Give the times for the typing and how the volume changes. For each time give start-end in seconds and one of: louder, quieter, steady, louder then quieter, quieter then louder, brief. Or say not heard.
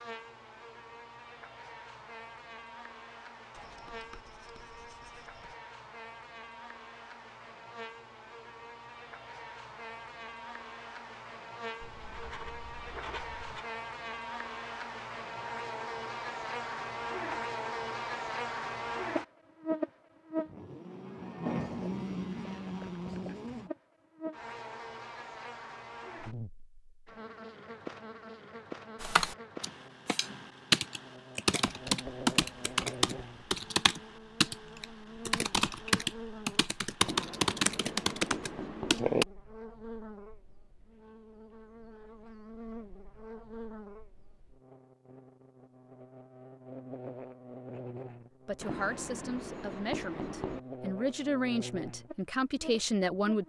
29.0-39.2 steady.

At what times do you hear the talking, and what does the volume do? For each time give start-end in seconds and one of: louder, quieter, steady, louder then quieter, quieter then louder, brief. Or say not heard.
48.5-53.4 louder.